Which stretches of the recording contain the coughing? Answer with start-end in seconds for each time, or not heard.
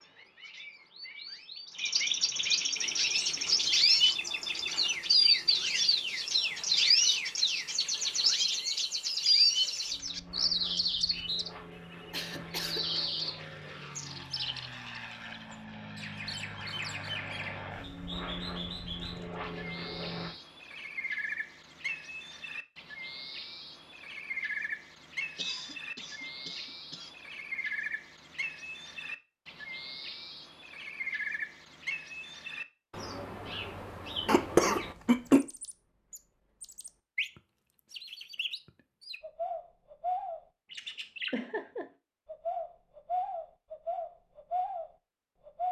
12.1-12.8, 25.4-27.1, 34.2-35.4.